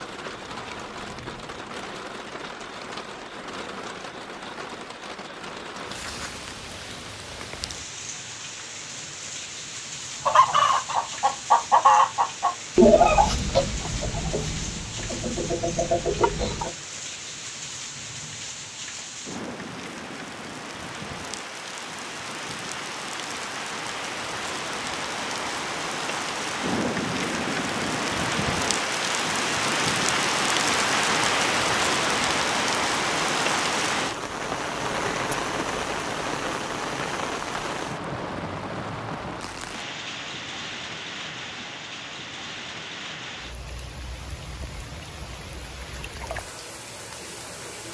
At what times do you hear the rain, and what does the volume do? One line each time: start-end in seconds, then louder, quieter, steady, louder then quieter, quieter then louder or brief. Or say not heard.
0.0-47.8 louder then quieter.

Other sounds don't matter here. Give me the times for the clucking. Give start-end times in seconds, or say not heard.
10.2-16.7.